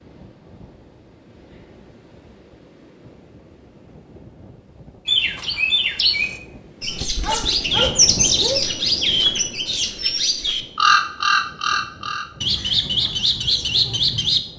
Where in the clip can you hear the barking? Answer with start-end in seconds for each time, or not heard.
7.2-8.6.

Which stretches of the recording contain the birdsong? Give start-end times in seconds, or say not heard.
5.0-14.5.